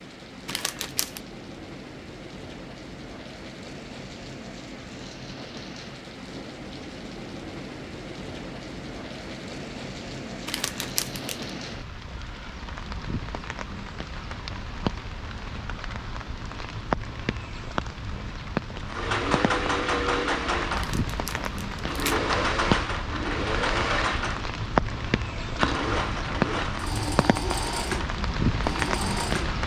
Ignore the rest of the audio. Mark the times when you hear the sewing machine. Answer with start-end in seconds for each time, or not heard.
18.8-29.6.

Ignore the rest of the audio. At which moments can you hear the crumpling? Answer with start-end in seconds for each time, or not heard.
0.5-1.2, 10.4-11.5, 20.8-22.2.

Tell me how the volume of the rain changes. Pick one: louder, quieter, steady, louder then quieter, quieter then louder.
louder.